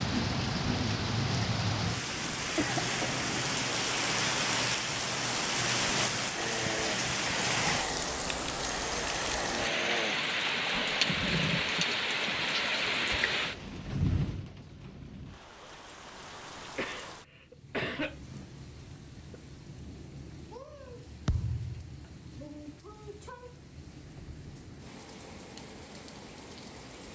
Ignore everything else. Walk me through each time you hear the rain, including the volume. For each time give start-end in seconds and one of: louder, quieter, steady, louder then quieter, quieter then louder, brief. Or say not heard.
0.0-27.0 quieter.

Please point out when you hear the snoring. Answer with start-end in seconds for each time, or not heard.
6.3-11.9.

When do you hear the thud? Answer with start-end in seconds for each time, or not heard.
21.2-21.9.